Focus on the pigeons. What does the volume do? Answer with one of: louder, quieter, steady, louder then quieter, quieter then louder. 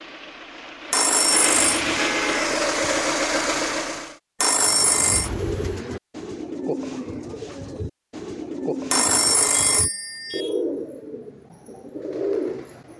steady.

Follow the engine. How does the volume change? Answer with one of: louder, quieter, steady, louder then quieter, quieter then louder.
louder.